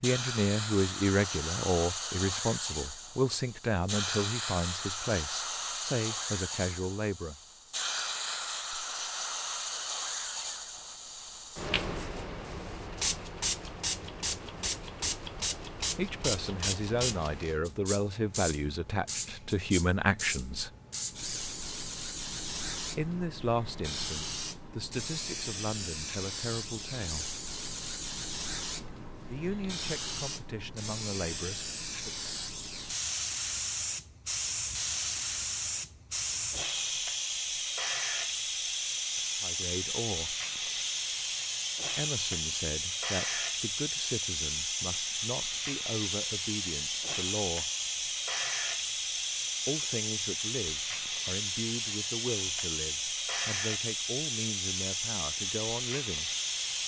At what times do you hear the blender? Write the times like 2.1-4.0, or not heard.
not heard.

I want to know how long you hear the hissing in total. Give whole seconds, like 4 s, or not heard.
57 s.